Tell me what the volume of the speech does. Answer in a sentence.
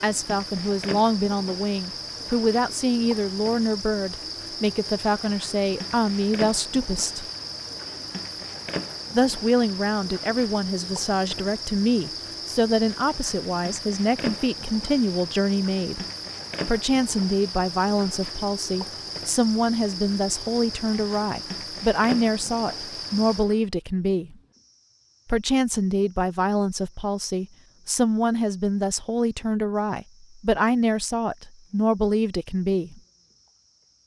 The volume of the speech stays about the same.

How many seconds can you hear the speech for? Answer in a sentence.
The speech can be heard for 30 seconds in total.